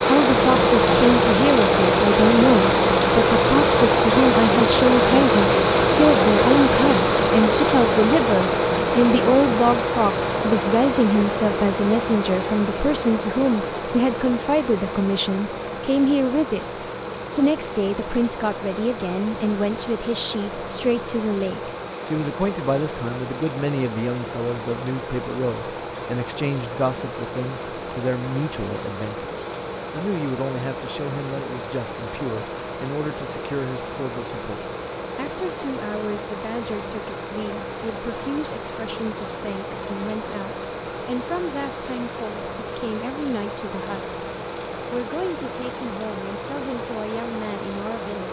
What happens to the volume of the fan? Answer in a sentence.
The loudness of the fan goes down.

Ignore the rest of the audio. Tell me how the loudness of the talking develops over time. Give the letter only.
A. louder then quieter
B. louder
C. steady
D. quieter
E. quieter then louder
D.